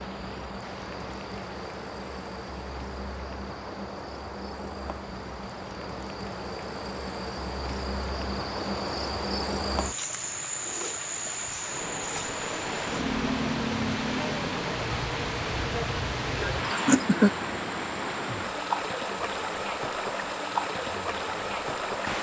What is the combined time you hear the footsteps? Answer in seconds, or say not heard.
not heard.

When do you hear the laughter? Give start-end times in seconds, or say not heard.
16.4-17.3.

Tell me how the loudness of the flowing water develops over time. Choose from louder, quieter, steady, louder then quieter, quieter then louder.
louder.